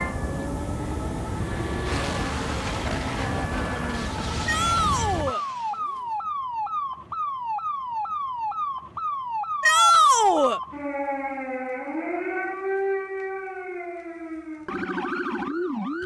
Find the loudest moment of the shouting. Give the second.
10 s.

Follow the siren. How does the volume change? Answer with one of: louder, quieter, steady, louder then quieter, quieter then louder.
steady.